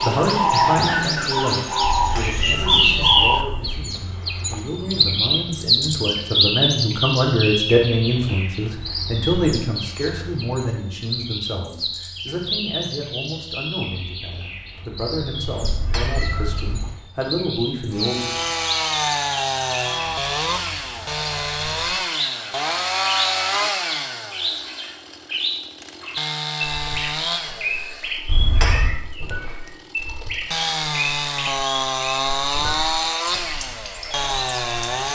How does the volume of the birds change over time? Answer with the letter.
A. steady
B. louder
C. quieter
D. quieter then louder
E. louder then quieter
C.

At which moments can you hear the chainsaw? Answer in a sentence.
The chainsaw can be heard from 17.9 to 35.1 s.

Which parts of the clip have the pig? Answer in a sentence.
You can't hear the pig here.